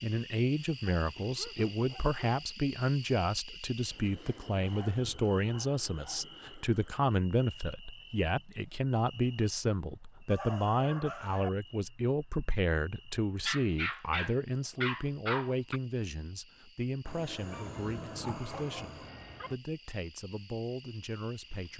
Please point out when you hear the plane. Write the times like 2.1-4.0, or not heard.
17.1-19.6.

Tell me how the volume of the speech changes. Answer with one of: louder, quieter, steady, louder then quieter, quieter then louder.
quieter.